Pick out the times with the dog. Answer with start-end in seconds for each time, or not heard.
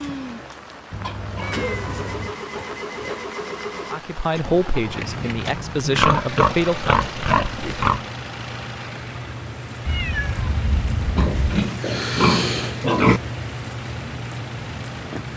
not heard.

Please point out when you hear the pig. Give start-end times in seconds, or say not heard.
1.0-3.2, 5.8-8.1, 11.2-13.2.